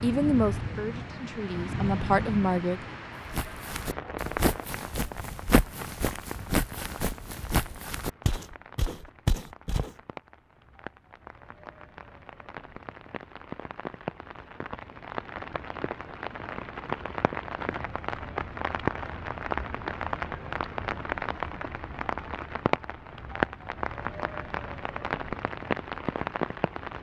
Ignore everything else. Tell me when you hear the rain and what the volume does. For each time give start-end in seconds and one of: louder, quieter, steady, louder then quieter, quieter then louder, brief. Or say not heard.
0.0-26.9 quieter then louder.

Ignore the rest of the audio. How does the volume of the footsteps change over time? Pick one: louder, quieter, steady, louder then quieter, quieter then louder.
steady.